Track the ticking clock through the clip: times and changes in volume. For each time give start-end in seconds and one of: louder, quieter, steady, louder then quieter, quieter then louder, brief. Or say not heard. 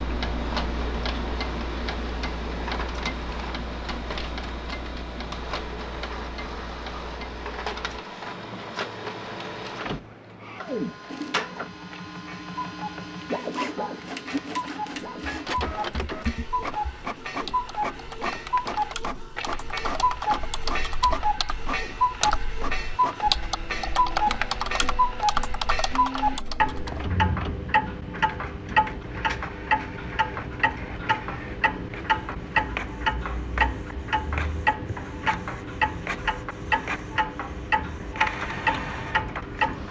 0.0-39.8 louder.